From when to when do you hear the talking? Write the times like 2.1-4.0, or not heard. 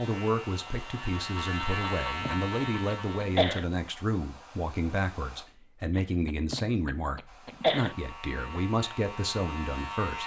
0.0-10.2.